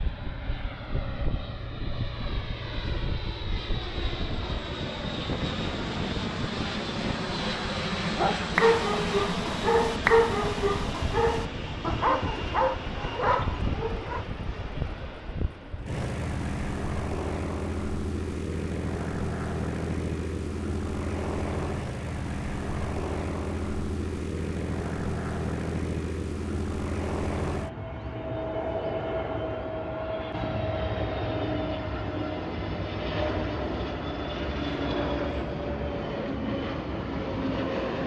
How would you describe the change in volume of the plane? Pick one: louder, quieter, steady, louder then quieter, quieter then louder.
steady.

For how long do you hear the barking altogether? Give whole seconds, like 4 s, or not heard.
6 s.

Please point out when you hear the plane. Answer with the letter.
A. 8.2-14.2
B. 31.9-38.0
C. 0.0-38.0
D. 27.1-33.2
C.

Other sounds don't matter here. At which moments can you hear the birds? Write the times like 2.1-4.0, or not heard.
not heard.